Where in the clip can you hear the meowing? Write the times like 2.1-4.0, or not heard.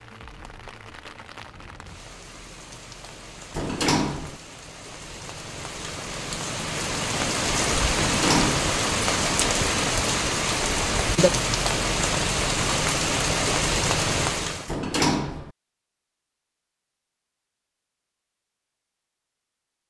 not heard.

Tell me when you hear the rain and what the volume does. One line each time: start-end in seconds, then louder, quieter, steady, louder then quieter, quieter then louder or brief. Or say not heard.
0.0-14.8 louder.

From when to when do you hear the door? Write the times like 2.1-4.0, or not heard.
3.5-4.4, 8.0-8.8, 14.7-15.5.